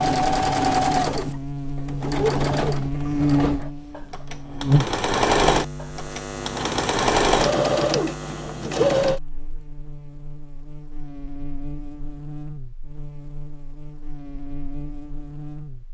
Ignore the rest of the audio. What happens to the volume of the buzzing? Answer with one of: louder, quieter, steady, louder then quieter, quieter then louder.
quieter.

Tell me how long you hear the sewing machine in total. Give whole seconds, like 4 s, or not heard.
9 s.